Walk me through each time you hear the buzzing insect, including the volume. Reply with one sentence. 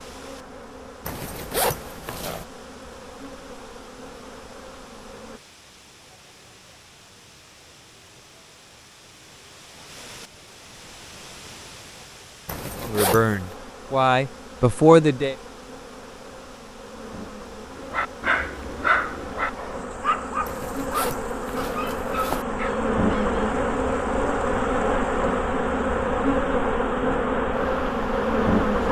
The buzzing insect can be heard from 0.0 to 5.4 s, at a steady volume; and from 12.5 to 28.8 s, getting louder.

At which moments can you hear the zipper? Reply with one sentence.
The zipper can be heard from 1.1 to 2.5 s, from 12.4 to 13.6 s and from 20.4 to 22.4 s.